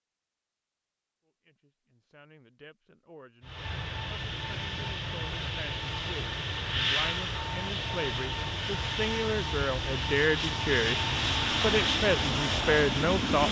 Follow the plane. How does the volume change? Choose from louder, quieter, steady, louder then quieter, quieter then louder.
louder.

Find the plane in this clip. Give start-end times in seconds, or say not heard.
3.4-13.4.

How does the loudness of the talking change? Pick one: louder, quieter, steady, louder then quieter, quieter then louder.
louder.